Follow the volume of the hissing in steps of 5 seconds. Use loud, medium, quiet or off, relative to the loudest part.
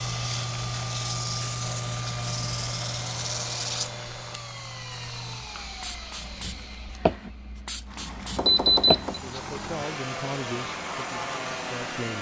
loud, loud, medium.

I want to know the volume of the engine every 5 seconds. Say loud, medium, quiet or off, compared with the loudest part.
loud, medium, loud.